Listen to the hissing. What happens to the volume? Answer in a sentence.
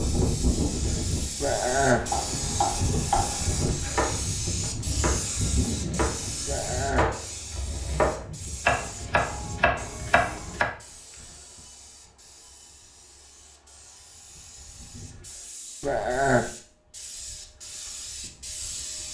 The loudness of the hissing goes down, then up.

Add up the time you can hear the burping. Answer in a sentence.
The burping can be heard for 2 seconds in total.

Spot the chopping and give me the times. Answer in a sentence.
You can hear the chopping from 1.9 to 10.7 s.